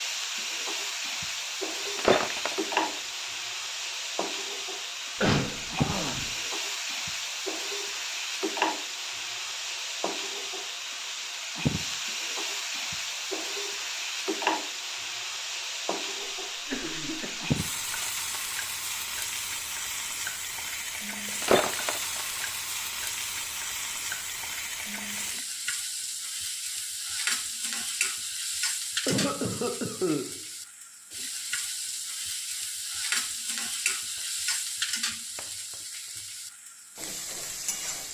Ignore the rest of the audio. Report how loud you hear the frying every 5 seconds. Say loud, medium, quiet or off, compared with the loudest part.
loud, loud, loud, loud, loud, loud, loud, medium.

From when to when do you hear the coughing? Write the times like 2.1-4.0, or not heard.
5.2-6.3, 16.6-17.4, 29.1-30.2.